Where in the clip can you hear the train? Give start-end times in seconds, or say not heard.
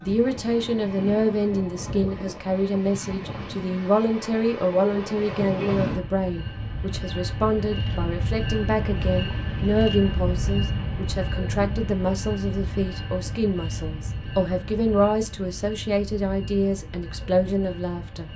0.0-18.3.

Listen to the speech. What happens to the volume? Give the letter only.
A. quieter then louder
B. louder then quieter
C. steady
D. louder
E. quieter
C.